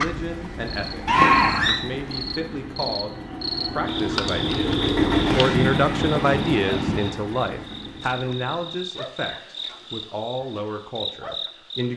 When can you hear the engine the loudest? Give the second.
5 s.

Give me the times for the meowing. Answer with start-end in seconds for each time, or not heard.
1.1-1.8.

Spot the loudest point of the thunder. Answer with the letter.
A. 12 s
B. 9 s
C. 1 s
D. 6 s
D.